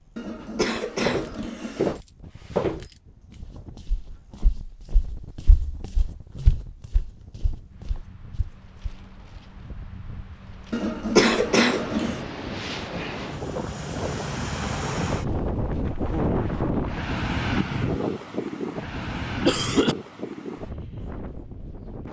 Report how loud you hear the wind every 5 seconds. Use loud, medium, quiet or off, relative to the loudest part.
quiet, quiet, medium, loud, medium.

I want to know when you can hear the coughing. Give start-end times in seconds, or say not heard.
0.1-1.9, 10.7-12.2, 19.1-19.9.